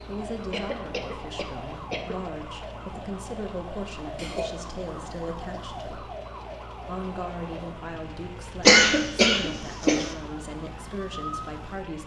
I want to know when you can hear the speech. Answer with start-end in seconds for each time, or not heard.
0.0-6.0, 6.8-12.0.